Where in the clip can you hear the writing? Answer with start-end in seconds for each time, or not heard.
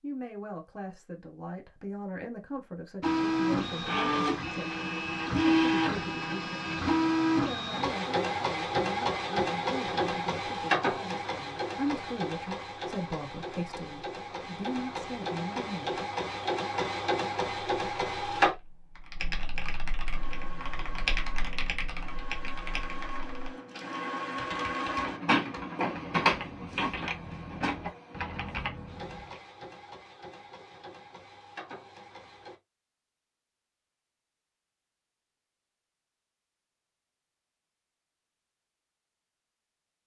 not heard.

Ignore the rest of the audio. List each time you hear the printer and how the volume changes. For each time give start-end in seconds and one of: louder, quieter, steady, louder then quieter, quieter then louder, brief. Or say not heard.
3.0-18.6 quieter then louder
20.1-32.5 louder then quieter.